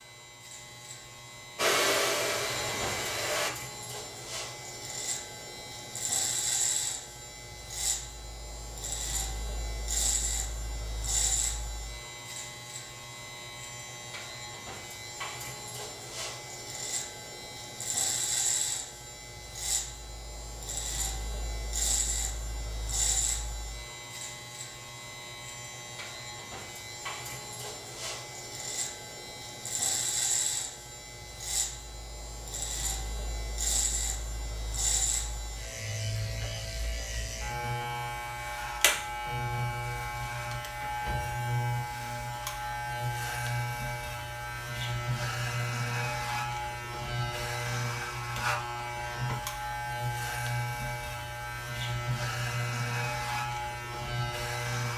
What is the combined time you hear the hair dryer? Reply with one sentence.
You can hear the hair dryer for 2 seconds altogether.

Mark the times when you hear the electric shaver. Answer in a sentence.
You can hear the electric shaver from 0.0 to 54.9 s.